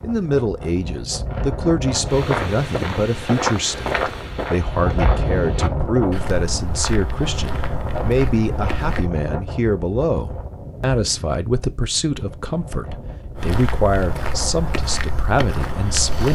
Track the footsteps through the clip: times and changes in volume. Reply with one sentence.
The footsteps can be heard from 2.0 to 9.1 s, getting quieter; and briefly from 13.3 to 16.2 s.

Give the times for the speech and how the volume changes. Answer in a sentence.
The speech can be heard from 0.0 to 16.2 s, at a steady volume.